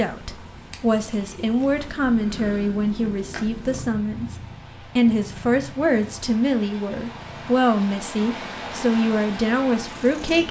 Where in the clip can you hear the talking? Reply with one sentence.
The talking can be heard from 0.0 to 4.3 s and from 5.0 to 10.4 s.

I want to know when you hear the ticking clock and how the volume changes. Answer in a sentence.
The ticking clock can't be heard in this clip.